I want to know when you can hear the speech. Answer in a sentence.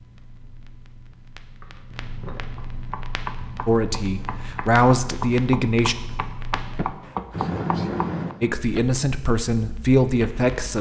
The speech can be heard from 3.6 to 6.0 s and from 8.4 to 10.7 s.